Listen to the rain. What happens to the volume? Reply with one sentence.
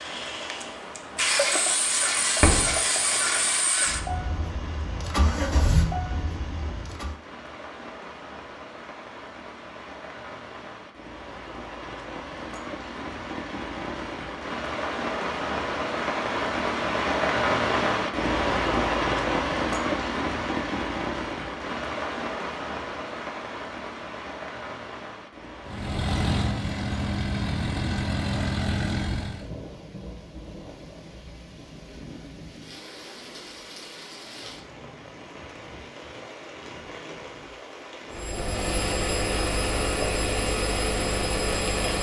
The volume of the rain goes up, then down.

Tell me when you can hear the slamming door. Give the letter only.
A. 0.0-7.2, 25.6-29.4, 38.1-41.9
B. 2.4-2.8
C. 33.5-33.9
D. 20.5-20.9
B.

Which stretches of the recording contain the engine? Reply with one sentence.
The engine can be heard from 0.0 to 7.2 s, from 25.6 to 29.4 s and from 38.1 to 41.9 s.